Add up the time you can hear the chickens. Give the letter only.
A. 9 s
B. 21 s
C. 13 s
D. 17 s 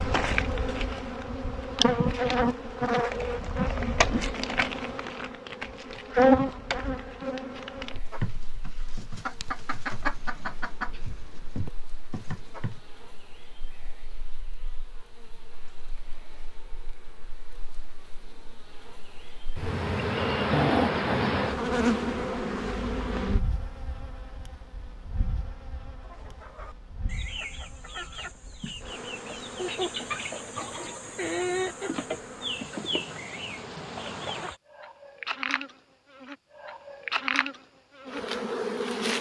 C.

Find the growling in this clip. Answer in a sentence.
You can hear the growling from 20.5 to 21.4 s.